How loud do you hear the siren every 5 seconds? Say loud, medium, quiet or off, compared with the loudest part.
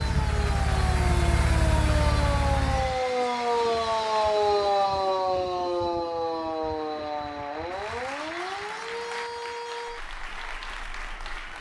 loud, loud, quiet.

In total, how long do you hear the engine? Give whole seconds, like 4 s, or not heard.
3 s.